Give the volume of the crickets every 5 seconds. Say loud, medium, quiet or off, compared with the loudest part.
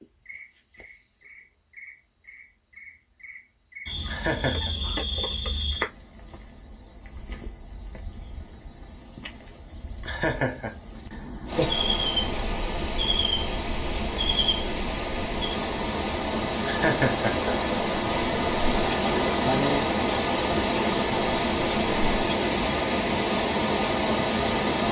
loud, medium, loud, medium, medium.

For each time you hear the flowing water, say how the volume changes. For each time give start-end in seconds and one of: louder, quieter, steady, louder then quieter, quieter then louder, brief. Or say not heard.
11.4-24.8 louder.